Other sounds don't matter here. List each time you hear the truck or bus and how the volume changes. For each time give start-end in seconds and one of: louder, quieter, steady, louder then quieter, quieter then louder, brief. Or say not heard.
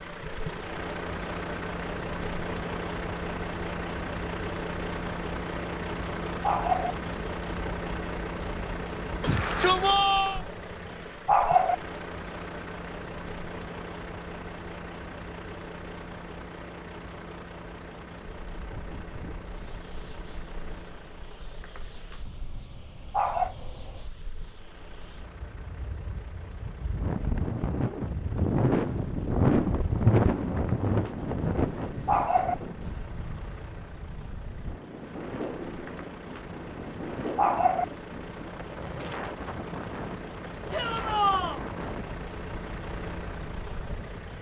0.0-44.3 quieter then louder.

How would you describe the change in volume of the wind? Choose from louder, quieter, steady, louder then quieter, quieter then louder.
louder then quieter.